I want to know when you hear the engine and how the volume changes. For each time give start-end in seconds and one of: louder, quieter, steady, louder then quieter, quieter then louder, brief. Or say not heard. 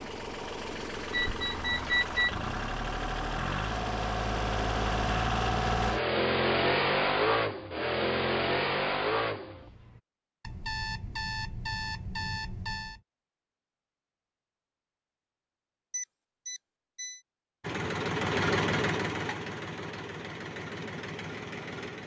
0.0-10.0 louder
17.6-22.0 quieter.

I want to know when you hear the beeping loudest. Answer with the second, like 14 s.
2 s.